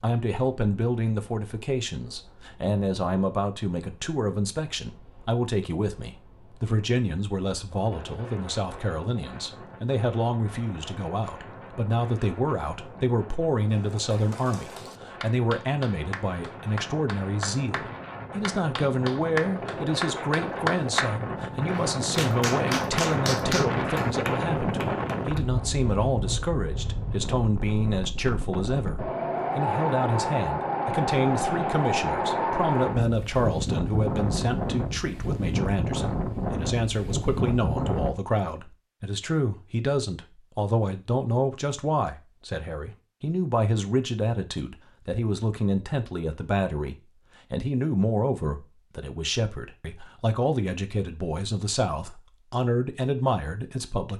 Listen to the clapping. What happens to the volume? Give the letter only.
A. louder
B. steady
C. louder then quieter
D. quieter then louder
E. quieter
A.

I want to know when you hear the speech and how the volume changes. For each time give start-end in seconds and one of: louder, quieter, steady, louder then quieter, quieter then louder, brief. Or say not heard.
0.0-54.1 steady.